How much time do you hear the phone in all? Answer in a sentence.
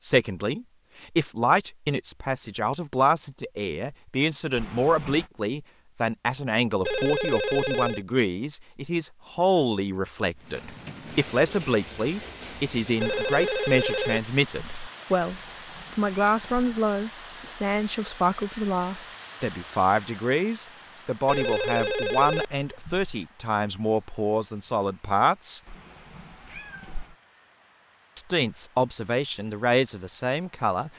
You can hear the phone for 5 seconds altogether.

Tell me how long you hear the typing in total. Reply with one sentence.
You can't hear the typing here.